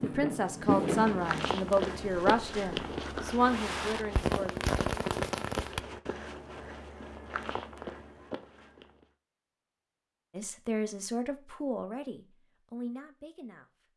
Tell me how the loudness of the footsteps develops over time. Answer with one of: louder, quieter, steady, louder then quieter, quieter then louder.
quieter.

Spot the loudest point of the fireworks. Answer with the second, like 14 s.
1 s.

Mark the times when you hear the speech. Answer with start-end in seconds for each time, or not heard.
0.0-4.5, 10.3-13.7.